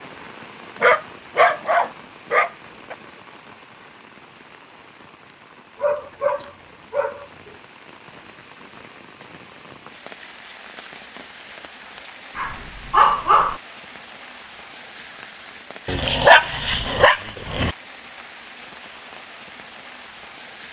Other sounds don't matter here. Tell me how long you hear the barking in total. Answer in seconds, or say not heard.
7 s.